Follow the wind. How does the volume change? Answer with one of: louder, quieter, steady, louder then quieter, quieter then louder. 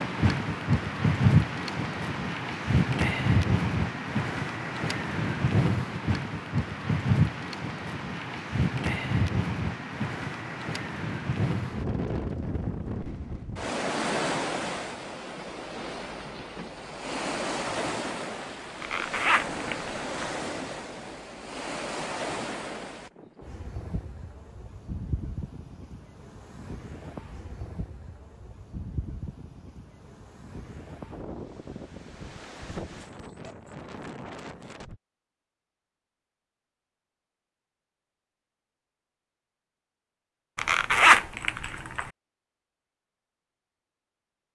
quieter.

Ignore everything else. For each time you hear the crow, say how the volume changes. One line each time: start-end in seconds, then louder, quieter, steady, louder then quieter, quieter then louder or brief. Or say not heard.
not heard.